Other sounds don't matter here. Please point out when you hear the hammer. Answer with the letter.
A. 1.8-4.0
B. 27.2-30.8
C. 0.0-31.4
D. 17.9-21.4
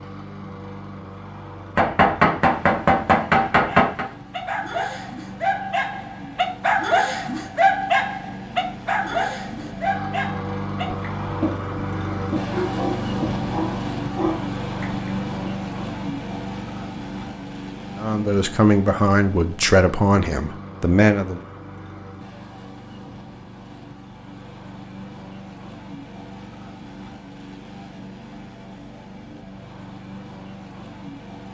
A.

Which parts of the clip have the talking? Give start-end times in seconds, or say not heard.
17.9-21.4.